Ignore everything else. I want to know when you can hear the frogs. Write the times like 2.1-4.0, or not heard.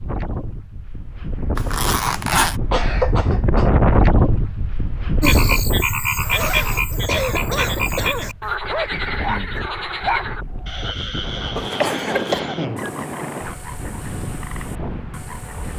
5.2-15.7.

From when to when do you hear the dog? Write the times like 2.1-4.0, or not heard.
6.3-11.3.